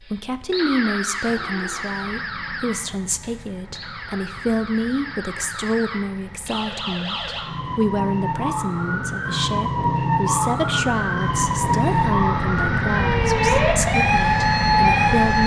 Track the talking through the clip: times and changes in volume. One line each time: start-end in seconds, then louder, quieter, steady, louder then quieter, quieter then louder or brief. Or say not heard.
0.0-15.4 steady.